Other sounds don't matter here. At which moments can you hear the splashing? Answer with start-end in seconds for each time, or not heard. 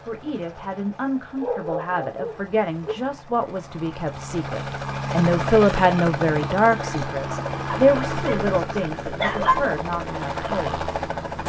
not heard.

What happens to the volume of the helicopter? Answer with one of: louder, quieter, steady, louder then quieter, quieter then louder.
louder.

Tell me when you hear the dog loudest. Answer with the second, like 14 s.
9 s.